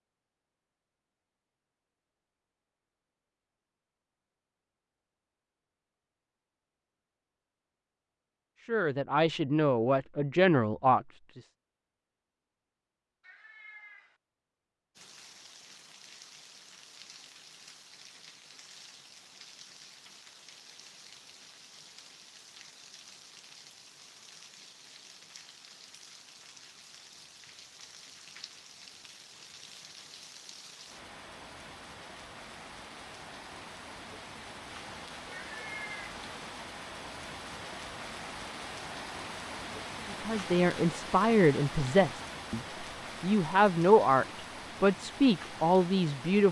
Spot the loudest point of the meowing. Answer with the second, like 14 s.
36 s.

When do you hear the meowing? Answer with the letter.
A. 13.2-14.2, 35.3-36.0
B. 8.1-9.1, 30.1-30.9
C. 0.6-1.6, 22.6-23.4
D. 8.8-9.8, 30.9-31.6
A.